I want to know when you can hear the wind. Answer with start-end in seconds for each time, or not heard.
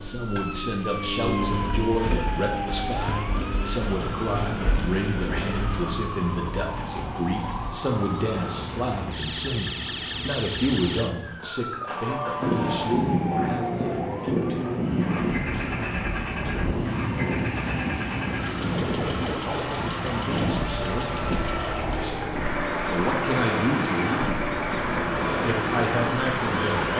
12.2-26.9.